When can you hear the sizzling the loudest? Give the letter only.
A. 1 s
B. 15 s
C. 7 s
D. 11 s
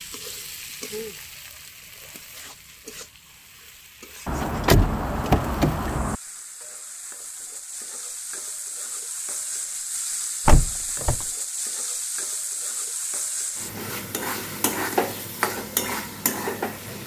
B.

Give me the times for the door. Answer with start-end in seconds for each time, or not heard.
4.2-6.2, 10.4-11.2.